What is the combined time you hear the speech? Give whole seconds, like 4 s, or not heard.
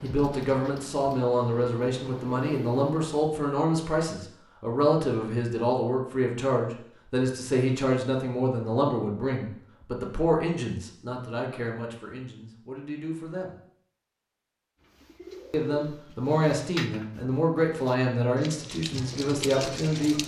18 s.